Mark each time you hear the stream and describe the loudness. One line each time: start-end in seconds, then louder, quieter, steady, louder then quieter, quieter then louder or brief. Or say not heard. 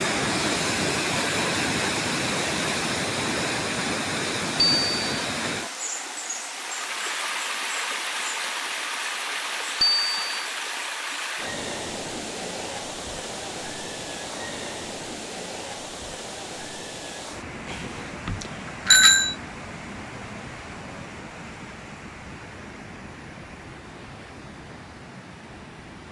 0.0-26.0 quieter.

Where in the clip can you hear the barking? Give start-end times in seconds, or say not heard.
not heard.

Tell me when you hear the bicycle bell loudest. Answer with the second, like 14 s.
19 s.